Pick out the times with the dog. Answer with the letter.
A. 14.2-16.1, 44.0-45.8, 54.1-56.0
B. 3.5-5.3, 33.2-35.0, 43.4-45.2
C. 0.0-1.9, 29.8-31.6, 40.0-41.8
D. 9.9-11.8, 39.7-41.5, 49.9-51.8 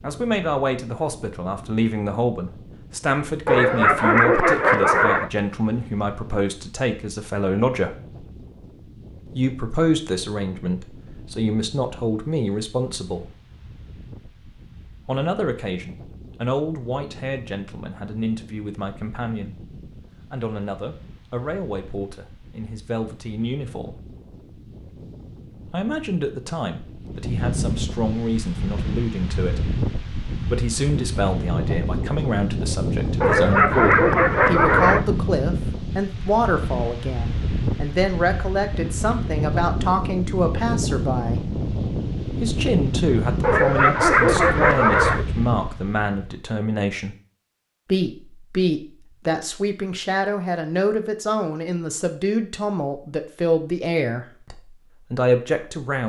B.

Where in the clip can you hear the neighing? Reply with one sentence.
The neighing can't be heard in this clip.